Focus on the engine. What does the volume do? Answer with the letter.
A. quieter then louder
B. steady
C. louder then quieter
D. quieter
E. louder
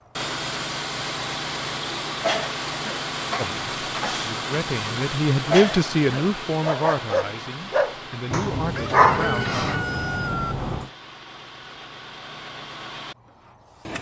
D.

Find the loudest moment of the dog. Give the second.
9 s.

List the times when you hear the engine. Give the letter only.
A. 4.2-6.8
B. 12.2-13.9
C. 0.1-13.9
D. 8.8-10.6
C.